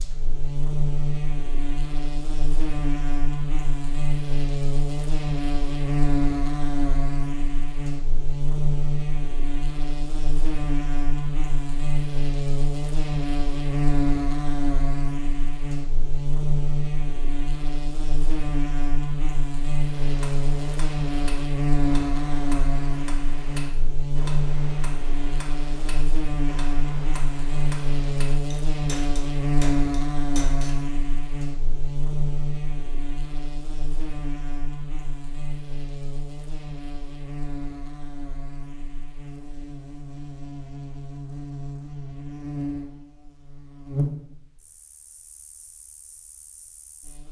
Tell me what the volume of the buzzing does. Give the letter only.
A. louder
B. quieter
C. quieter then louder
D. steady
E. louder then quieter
B.